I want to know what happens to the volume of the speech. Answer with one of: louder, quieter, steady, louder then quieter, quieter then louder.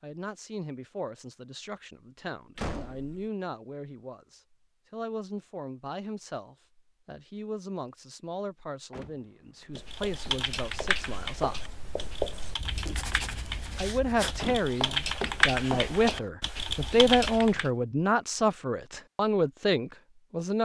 louder.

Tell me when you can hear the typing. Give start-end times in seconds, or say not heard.
9.8-17.7.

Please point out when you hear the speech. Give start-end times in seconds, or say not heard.
0.0-11.6, 13.8-20.6.